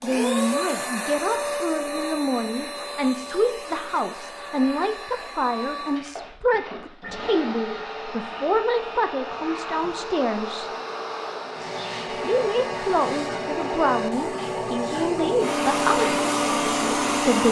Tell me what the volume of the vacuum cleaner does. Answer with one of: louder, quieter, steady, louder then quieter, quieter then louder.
quieter then louder.